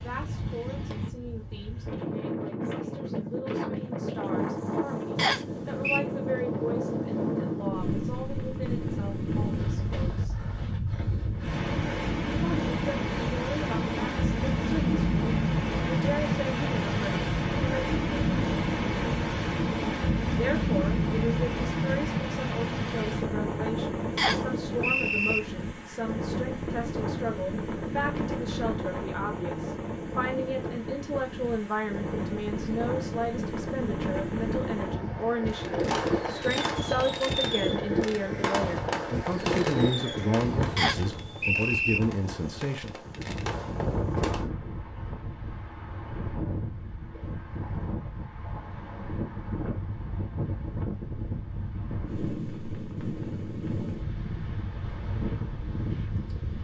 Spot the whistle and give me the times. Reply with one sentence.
The whistle can be heard from 5.2 to 6.0 s, from 24.1 to 25.4 s and from 40.8 to 42.0 s.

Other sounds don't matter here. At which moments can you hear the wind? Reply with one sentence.
The wind can be heard from 0.0 to 56.6 s.